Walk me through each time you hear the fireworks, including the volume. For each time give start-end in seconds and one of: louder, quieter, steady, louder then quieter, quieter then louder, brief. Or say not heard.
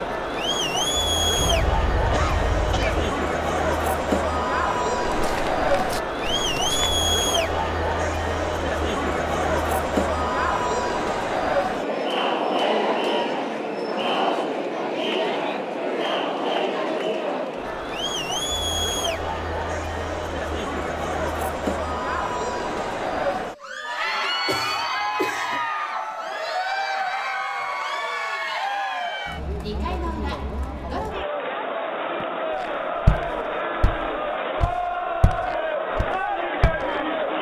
not heard.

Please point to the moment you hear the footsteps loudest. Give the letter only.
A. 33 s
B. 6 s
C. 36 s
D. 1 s
A.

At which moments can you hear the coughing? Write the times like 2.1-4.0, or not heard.
1.4-3.2, 24.4-25.6.